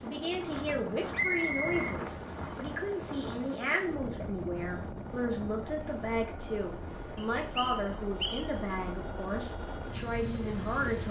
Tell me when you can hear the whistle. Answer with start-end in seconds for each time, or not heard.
1.1-2.5, 7.2-8.6.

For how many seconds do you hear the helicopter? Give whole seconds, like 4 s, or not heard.
11 s.